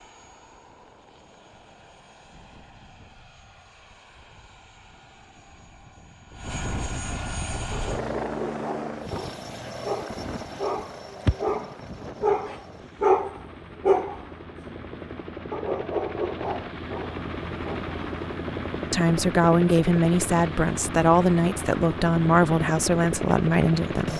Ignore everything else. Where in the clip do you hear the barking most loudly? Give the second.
13 s.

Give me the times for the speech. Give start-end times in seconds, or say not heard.
18.9-24.1.